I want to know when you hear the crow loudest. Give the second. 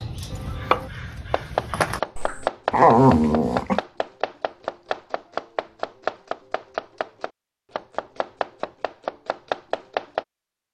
2 s.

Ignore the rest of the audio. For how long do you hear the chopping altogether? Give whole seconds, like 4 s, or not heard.
10 s.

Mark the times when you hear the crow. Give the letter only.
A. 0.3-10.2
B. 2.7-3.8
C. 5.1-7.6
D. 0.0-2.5
D.